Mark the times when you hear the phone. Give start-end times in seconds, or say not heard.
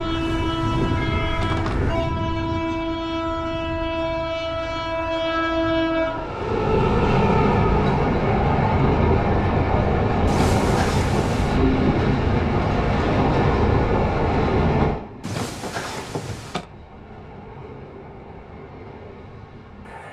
0.1-2.1, 10.2-11.6, 15.2-16.6.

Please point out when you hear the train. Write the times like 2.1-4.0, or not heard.
0.0-20.0.